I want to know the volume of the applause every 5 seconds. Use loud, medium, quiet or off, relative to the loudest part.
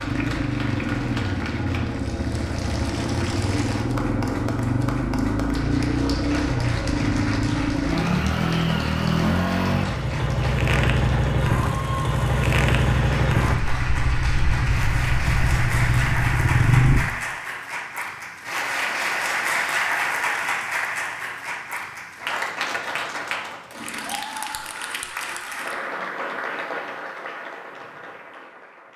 medium, medium, medium, loud, loud, medium.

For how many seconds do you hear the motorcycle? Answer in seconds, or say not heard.
17 s.